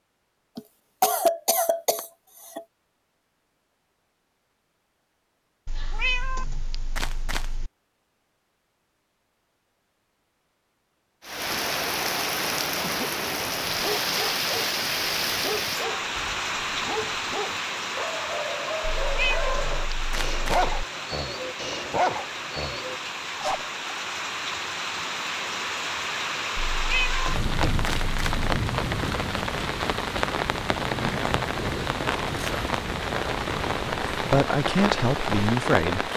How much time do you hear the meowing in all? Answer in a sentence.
The meowing can be heard for 6 seconds in total.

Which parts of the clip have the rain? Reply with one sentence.
You can hear the rain from 11.2 to 36.1 s.